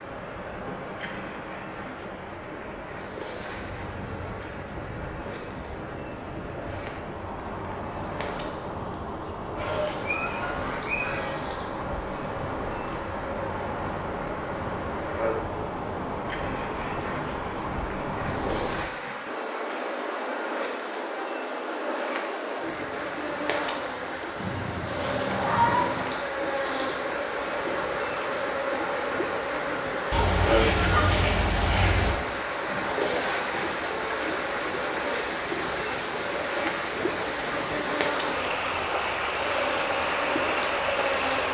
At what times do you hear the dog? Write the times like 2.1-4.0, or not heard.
not heard.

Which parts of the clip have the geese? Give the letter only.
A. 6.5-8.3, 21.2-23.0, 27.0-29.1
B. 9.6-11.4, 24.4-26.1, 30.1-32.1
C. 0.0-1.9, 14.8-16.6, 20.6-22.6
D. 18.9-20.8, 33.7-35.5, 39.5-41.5
B.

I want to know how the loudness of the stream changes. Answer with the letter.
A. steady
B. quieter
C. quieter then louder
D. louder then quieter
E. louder
E.